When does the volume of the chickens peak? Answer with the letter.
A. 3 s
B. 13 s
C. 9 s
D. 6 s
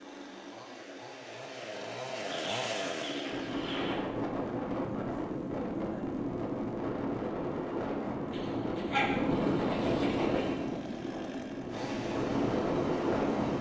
C.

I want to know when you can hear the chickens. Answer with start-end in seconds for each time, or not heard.
2.2-4.0, 8.3-10.6.